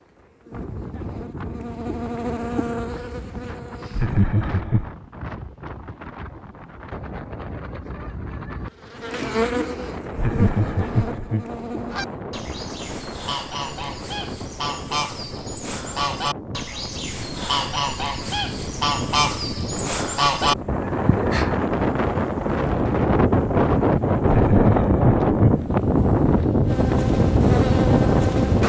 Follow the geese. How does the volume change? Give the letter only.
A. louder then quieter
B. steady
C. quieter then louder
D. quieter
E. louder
E.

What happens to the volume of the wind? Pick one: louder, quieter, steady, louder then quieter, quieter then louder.
louder.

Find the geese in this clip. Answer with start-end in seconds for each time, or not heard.
11.8-21.6.